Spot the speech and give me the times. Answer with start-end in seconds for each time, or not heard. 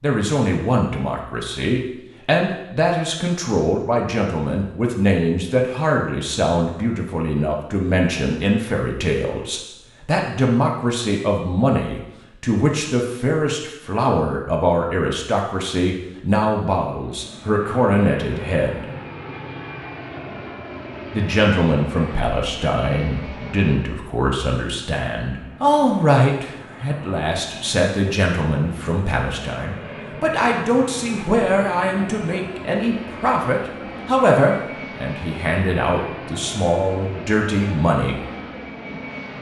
0.0-18.9, 21.1-38.2.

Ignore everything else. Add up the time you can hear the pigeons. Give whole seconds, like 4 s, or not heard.
not heard.